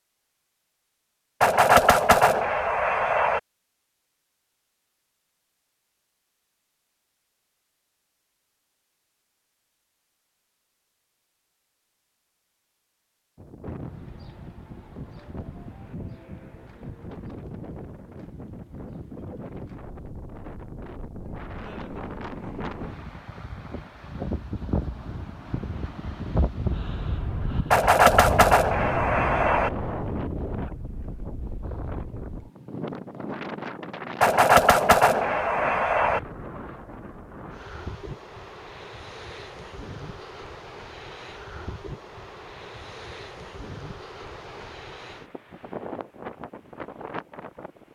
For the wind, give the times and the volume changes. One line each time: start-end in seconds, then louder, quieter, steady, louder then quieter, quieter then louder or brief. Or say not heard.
13.3-47.9 louder then quieter.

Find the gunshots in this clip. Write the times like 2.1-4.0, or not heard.
1.4-3.4, 27.7-29.7, 34.2-36.2.